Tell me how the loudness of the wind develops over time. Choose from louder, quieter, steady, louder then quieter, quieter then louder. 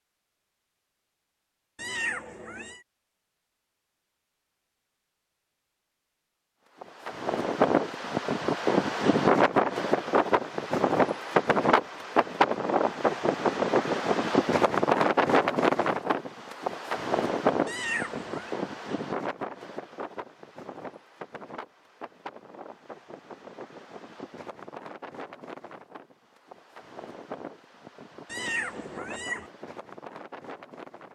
quieter.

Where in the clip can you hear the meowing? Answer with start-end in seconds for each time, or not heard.
1.8-2.8, 17.6-18.5, 28.2-29.5.